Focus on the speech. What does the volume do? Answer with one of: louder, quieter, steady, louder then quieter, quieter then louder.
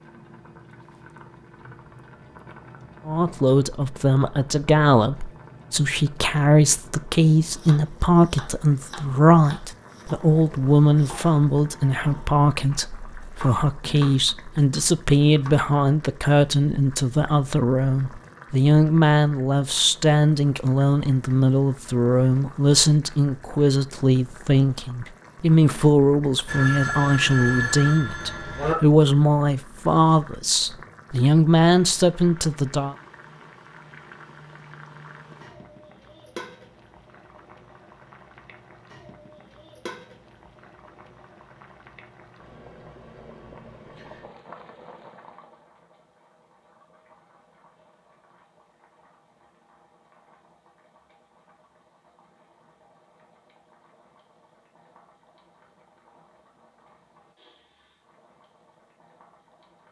steady.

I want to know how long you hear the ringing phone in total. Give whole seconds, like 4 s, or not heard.
2 s.